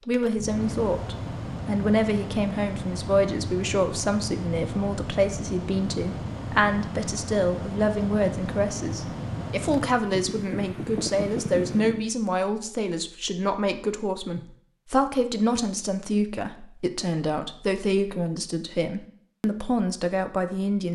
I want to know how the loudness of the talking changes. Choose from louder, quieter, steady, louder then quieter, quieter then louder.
steady.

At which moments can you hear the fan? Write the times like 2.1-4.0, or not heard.
0.0-12.1.